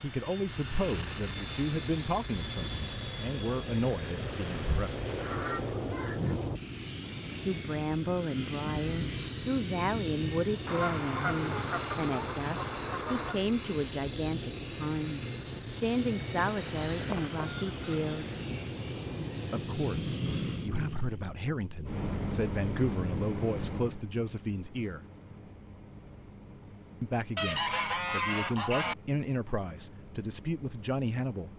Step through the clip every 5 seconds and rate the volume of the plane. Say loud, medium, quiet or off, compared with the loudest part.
loud, loud, loud, loud, loud, quiet, quiet.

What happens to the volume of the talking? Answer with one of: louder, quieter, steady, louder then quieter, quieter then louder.
steady.